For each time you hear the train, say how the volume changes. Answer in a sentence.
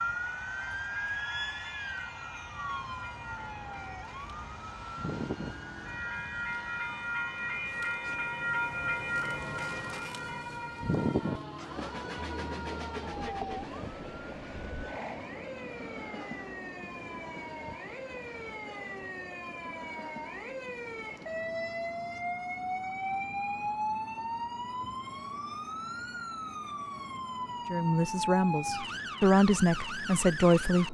The train can be heard from 0.0 to 30.8 s, getting louder then quieter.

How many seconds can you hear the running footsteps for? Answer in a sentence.
The running footsteps can't be heard in this clip.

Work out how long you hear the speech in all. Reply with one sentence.
You can hear the speech for 3 seconds altogether.